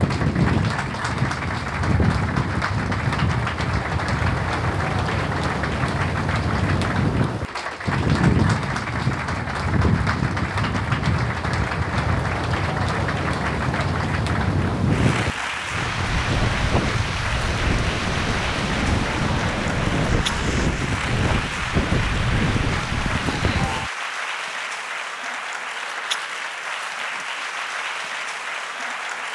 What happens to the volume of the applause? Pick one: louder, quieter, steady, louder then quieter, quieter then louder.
steady.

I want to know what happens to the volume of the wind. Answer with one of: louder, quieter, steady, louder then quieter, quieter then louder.
steady.